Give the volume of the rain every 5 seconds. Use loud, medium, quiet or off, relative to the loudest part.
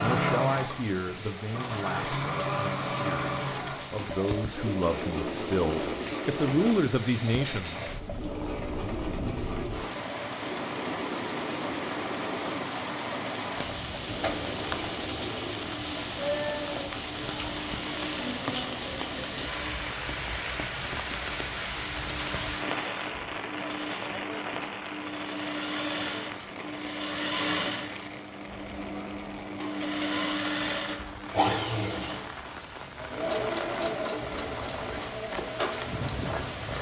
medium, medium, loud, loud, loud, medium, medium, loud.